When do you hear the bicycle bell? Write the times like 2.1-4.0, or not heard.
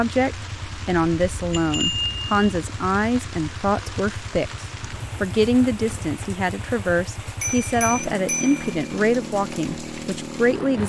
1.5-2.5, 7.4-8.8.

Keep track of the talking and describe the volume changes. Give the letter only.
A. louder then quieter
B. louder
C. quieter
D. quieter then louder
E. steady
E.